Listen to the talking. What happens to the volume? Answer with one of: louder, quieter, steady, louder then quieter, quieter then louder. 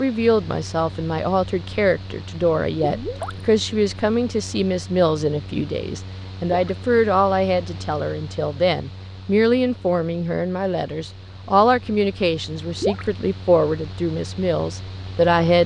steady.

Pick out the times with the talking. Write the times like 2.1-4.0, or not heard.
0.0-15.6.